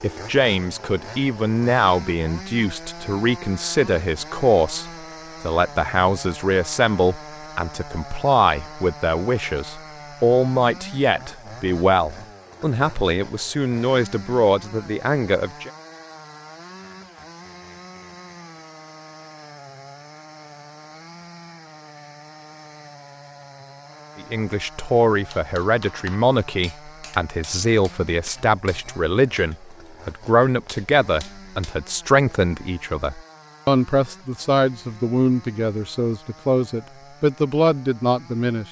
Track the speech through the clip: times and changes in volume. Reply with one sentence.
You can hear the speech from 0.0 to 15.7 s, at a steady volume; and from 24.1 to 38.6 s, at a steady volume.